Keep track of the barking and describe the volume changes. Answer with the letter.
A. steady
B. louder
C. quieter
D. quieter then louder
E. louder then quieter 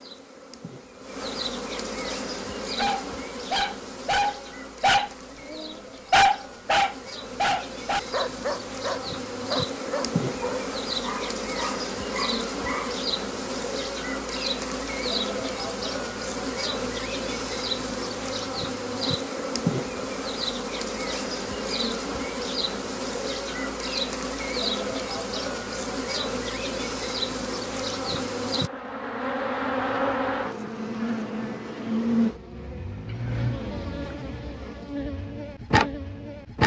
C.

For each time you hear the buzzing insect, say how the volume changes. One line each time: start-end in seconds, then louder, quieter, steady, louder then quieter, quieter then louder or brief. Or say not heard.
0.0-36.6 louder.